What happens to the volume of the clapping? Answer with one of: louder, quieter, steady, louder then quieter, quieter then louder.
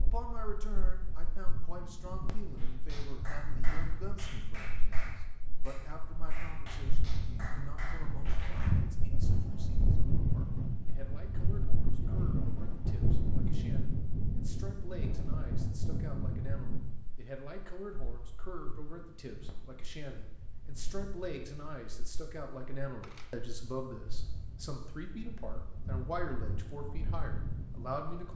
quieter then louder.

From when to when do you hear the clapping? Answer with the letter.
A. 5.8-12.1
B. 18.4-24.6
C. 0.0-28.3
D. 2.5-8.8
D.